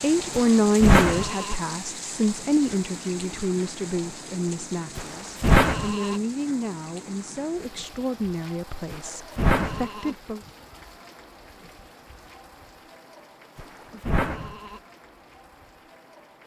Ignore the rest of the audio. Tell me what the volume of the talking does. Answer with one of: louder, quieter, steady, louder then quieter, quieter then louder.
quieter.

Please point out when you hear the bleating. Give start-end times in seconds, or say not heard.
0.3-1.6, 5.0-6.2, 8.9-10.1, 13.6-14.8.